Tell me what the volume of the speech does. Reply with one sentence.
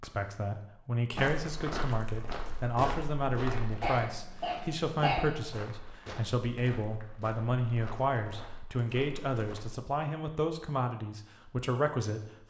The volume of the speech stays about the same.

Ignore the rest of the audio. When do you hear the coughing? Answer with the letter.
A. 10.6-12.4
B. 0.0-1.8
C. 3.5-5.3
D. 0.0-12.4
C.